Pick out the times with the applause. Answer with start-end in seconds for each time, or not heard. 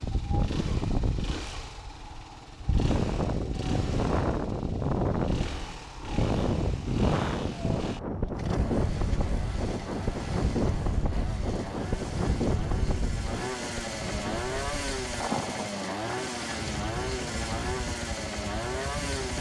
not heard.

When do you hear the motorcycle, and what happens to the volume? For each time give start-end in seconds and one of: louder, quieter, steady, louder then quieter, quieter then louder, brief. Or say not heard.
0.0-19.3 louder.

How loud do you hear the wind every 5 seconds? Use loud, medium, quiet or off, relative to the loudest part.
loud, loud, loud, medium.